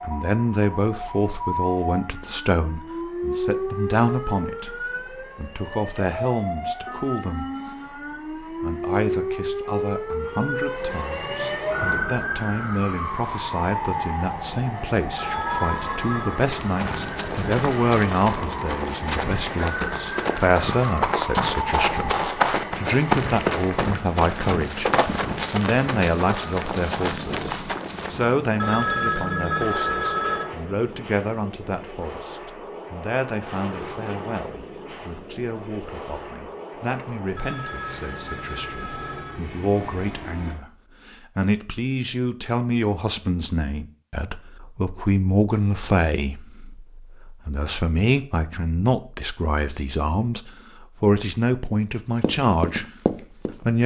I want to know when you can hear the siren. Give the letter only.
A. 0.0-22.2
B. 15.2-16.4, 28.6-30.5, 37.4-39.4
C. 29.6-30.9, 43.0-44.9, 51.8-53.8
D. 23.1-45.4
A.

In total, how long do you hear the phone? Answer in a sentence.
The phone can be heard for 5 seconds in total.